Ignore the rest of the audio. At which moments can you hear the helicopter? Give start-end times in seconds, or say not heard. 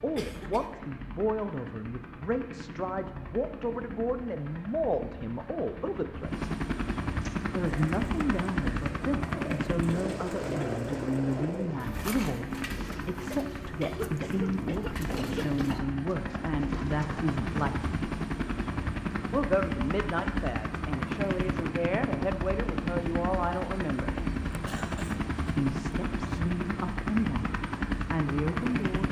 0.0-29.0.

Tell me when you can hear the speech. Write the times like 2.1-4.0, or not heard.
0.0-6.5, 7.5-18.1, 19.3-24.1, 25.6-29.0.